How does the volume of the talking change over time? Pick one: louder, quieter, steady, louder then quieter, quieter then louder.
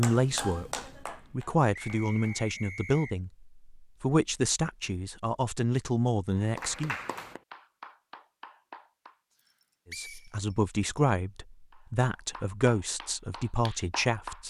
steady.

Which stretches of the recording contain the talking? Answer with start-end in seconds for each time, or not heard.
0.0-7.0, 9.9-14.4.